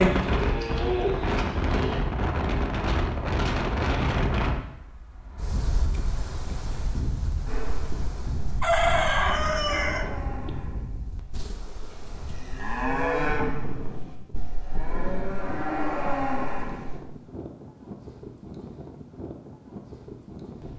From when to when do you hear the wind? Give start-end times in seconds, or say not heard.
0.0-20.7.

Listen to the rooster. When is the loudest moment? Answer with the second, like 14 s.
9 s.